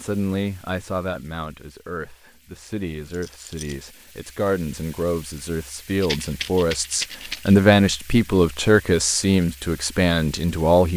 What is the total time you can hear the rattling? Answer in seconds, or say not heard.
2 s.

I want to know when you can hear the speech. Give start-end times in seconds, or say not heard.
0.0-10.9.